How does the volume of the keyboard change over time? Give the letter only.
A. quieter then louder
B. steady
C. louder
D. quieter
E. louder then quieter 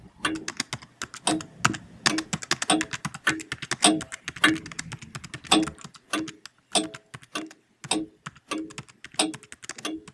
D.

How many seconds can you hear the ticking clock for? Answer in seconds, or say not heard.
9 s.